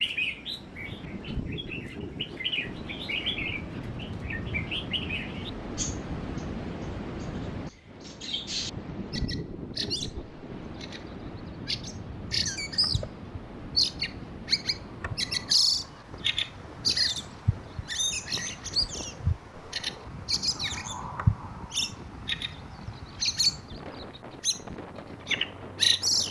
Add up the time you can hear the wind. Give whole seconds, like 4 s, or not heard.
26 s.